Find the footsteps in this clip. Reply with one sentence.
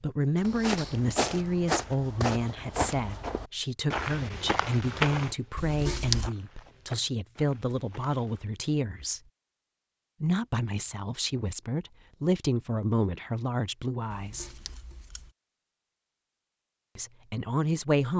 The footsteps can be heard from 0.4 to 8.5 s.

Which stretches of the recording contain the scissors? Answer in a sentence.
You can hear the scissors from 5.5 to 6.3 s and from 14.1 to 15.3 s.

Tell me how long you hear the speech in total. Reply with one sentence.
You can hear the speech for 15 seconds altogether.